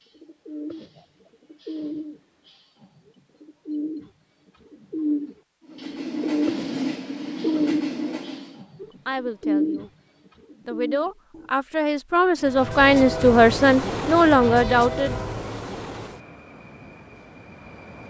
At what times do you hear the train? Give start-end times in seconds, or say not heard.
5.6-8.7, 12.3-18.0.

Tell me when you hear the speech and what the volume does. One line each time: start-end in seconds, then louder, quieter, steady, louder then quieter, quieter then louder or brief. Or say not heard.
8.8-9.9 brief
10.7-15.2 louder.